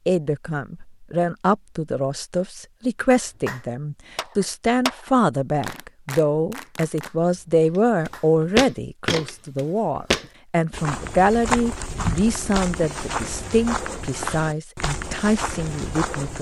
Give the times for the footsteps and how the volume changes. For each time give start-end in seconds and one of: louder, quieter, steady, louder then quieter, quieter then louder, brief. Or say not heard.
8.1-16.3 quieter.